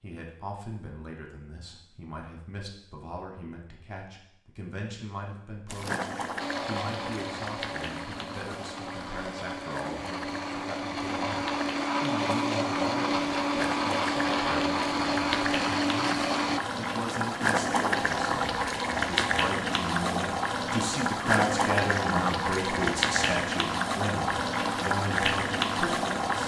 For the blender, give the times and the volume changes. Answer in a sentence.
The blender can be heard from 6.3 to 16.6 s, getting louder.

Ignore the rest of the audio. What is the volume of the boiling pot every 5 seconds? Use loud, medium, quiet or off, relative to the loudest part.
off, medium, medium, loud, loud, loud.